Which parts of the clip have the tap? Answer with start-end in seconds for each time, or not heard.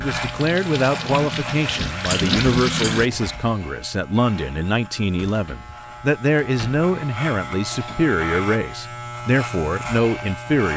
0.0-3.1.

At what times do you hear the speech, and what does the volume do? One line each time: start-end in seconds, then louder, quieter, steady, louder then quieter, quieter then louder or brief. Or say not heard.
0.0-10.7 steady.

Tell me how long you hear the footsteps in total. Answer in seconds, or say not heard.
not heard.